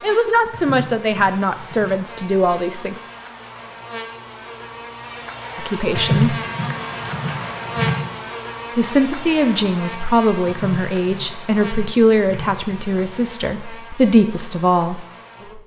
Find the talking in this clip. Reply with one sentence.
The talking can be heard from 0.0 to 3.0 s, from 5.5 to 6.4 s and from 8.8 to 15.0 s.